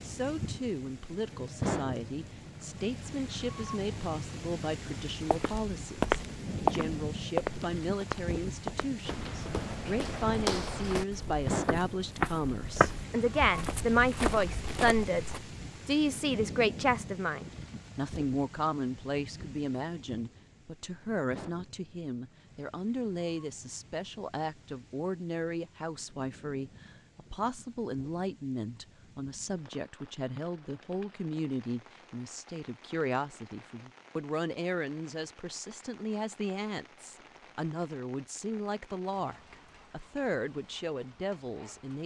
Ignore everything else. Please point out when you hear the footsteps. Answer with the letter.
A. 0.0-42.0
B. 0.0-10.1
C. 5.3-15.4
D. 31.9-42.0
C.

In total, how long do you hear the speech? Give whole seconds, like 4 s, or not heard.
42 s.